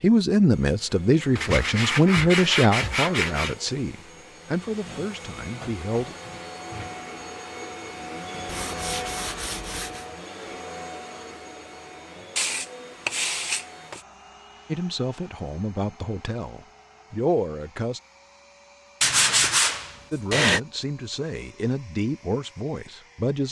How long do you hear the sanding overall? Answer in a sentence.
The sanding can be heard for 7 seconds in total.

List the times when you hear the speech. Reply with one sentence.
The speech can be heard from 0.0 to 6.2 s, from 14.7 to 18.0 s and from 20.1 to 23.4 s.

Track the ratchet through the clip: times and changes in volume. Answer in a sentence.
You can't hear the ratchet here.